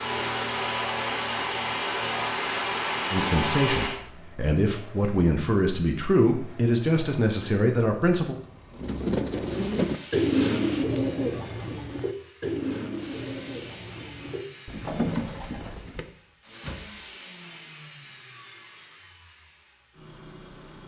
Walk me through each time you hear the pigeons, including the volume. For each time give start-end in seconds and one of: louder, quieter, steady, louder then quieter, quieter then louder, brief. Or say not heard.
8.8-16.1 quieter then louder.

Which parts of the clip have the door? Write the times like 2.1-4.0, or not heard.
16.1-17.1.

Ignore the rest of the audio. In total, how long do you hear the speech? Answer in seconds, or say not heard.
5 s.